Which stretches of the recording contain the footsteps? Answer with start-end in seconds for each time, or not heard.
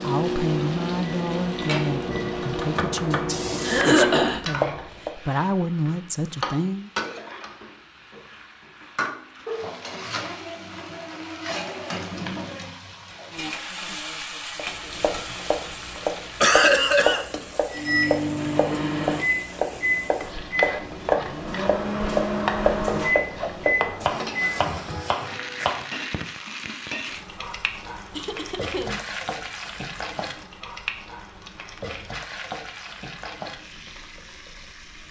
not heard.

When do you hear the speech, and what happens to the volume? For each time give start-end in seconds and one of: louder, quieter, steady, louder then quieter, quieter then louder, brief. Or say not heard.
0.0-6.9 quieter then louder.